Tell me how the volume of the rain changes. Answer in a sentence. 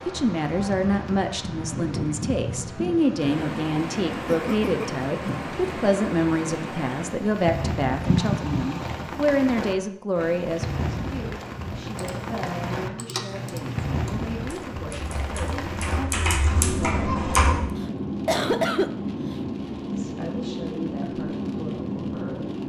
The volume of the rain stays about the same.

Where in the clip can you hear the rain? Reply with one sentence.
The rain can be heard from 0.0 to 22.6 s.